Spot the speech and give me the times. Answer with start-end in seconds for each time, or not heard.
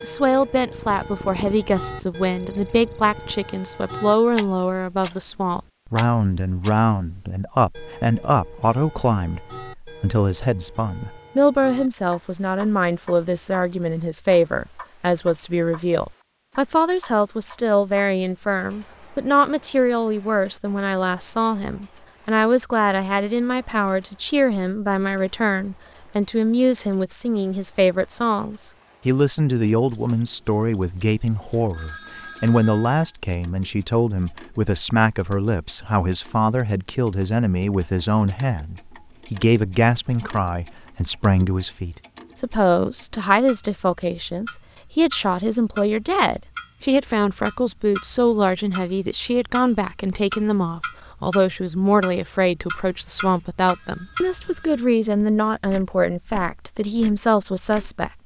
0.0-58.2.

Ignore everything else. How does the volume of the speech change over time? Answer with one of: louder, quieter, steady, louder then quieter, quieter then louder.
steady.